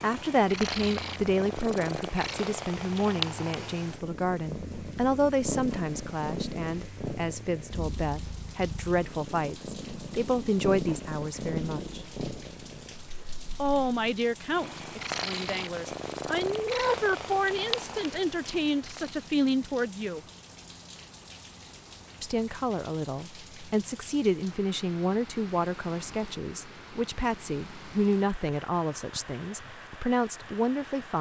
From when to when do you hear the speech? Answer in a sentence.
You can hear the speech from 0.0 to 12.1 s, from 13.6 to 20.2 s and from 22.2 to 31.1 s.